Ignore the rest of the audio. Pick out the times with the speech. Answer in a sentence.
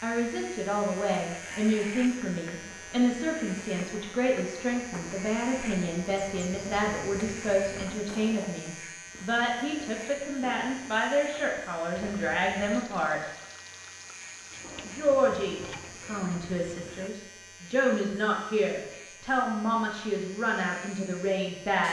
The speech can be heard from 0.0 to 13.2 s and from 14.8 to 21.8 s.